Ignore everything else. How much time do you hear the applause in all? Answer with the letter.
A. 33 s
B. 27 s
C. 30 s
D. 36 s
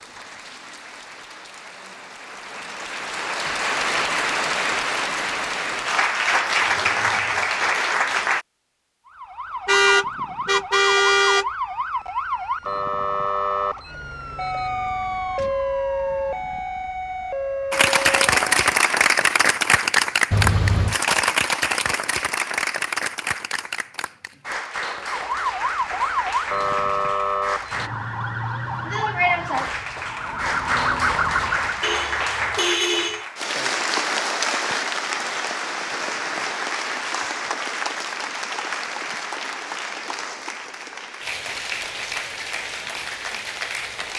A.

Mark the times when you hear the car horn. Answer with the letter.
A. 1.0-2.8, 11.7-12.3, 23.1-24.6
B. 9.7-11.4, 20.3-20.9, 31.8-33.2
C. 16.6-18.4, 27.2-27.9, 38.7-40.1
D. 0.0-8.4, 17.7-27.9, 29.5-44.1
B.